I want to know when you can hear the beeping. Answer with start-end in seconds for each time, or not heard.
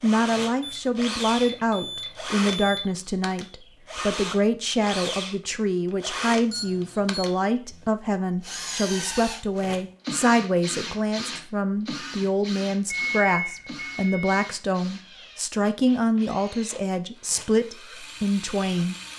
0.6-2.9, 6.5-7.2, 12.9-14.4.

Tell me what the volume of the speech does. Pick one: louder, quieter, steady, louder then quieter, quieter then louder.
steady.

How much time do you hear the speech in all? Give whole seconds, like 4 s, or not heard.
19 s.